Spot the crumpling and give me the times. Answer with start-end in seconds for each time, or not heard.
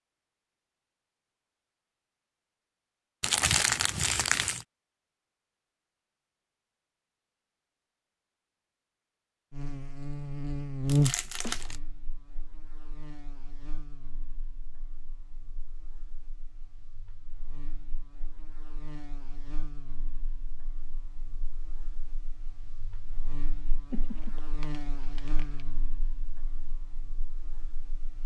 3.2-4.7, 10.8-11.8, 23.9-25.6.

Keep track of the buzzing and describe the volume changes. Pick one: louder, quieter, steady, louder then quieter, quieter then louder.
quieter then louder.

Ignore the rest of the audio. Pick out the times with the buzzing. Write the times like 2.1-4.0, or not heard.
9.5-28.2.